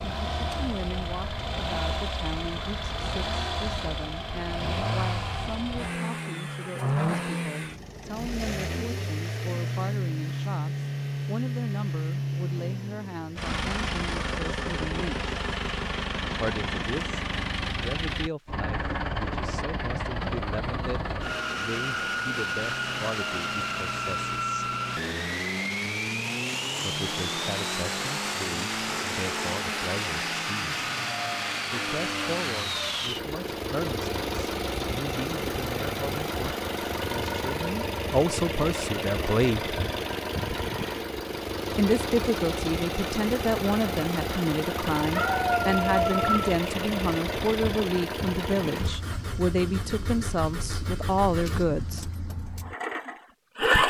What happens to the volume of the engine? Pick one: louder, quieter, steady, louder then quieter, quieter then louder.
steady.